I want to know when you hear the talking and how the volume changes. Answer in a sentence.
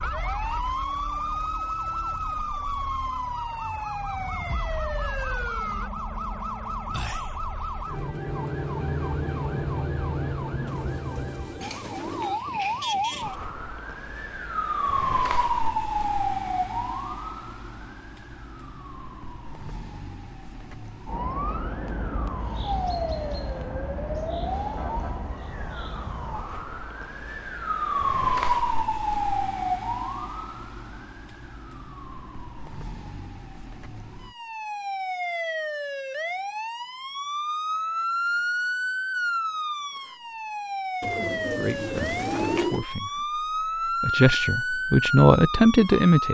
The talking can be heard from 41.5 to 46.2 s, getting louder.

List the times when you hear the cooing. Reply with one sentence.
The cooing can be heard from 10.7 to 12.4 s and from 41.0 to 42.9 s.